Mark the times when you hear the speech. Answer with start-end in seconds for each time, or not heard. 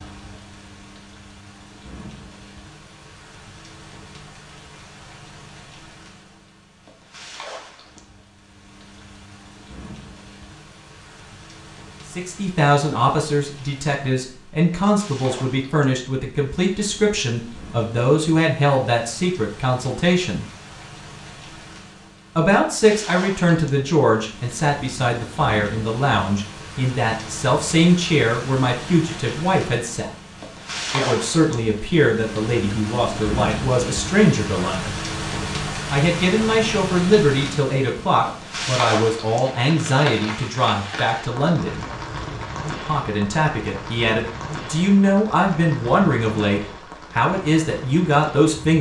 12.1-20.4, 22.4-30.1, 30.9-34.9, 35.9-41.9, 42.9-48.7.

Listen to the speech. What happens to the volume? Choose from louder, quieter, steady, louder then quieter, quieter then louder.
steady.